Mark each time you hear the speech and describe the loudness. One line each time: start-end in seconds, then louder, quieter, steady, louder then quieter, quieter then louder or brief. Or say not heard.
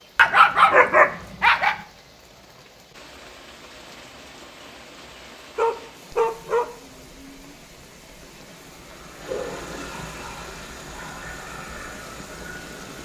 not heard.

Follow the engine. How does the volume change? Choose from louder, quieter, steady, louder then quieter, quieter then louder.
steady.